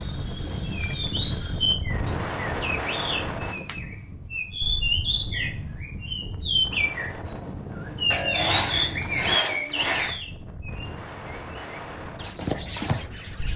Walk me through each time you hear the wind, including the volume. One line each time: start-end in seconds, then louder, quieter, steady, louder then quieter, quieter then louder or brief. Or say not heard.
0.0-13.5 quieter.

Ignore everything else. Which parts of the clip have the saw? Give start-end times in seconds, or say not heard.
8.1-10.2.